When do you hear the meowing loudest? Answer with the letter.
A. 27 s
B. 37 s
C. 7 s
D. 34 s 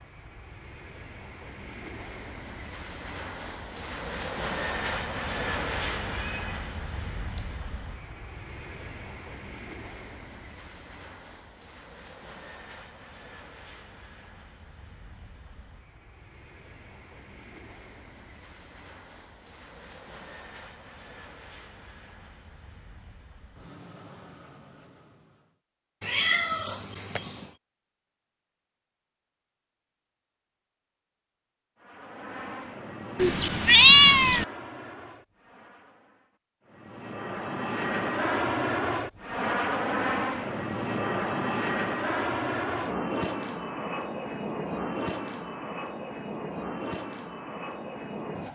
D.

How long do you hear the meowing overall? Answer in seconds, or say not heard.
4 s.